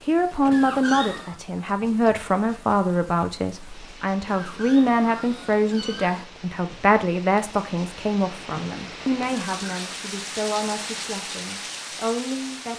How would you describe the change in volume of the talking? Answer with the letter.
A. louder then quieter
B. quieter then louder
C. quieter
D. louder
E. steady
C.